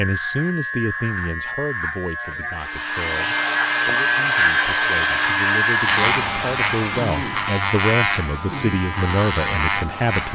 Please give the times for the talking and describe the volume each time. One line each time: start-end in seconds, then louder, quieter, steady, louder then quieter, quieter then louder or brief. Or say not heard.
0.0-10.2 quieter then louder.